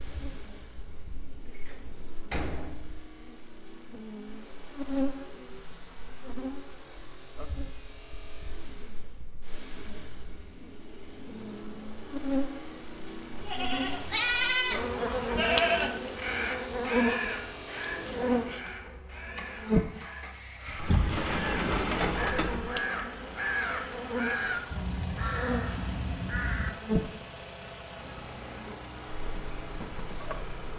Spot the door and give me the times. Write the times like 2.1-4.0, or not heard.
1.5-2.9, 20.8-22.7.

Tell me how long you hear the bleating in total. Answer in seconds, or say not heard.
3 s.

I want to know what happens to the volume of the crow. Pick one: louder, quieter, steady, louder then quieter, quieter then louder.
quieter then louder.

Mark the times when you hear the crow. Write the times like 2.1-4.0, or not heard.
16.1-26.7.